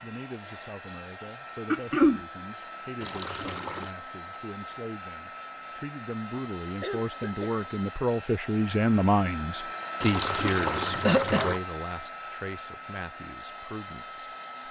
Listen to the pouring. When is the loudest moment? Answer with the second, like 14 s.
11 s.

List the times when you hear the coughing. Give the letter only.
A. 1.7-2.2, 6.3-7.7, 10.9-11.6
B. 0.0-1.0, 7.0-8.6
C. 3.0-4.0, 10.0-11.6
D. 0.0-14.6
A.